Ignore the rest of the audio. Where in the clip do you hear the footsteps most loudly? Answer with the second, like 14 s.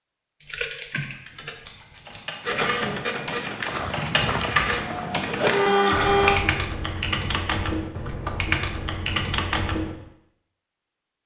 4 s.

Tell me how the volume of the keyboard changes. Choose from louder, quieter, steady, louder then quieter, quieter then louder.
louder.